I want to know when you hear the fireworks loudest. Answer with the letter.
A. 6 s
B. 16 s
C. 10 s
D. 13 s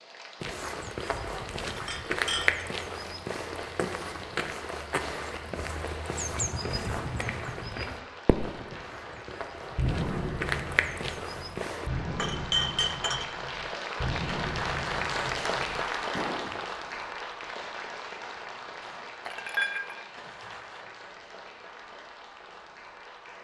C.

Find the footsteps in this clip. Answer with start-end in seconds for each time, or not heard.
0.4-11.9.